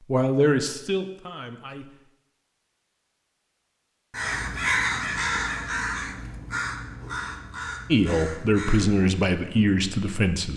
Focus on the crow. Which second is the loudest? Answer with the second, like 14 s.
5 s.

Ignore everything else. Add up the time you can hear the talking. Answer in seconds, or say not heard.
5 s.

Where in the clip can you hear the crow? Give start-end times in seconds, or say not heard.
4.1-10.1.